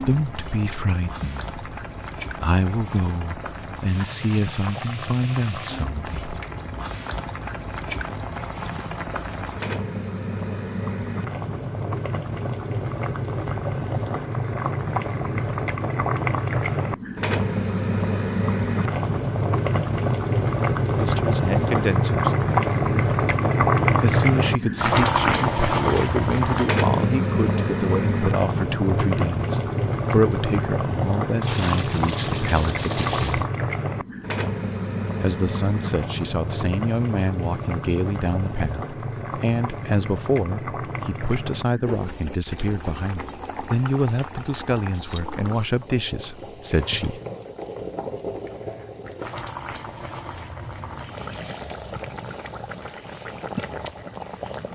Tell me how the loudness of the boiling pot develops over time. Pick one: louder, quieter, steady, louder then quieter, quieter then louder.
louder then quieter.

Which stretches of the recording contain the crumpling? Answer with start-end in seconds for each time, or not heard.
8.6-9.6, 31.4-33.5.